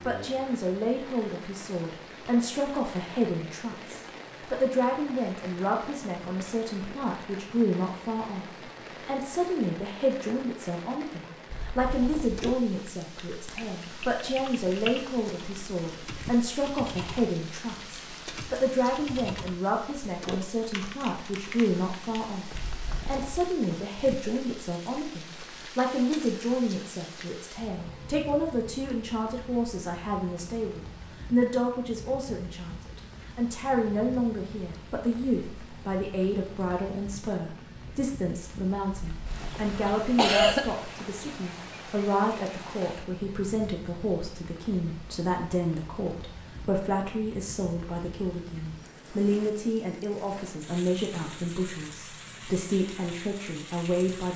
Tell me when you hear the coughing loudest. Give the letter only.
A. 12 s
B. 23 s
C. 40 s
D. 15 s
C.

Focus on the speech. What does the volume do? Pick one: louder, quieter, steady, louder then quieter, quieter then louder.
steady.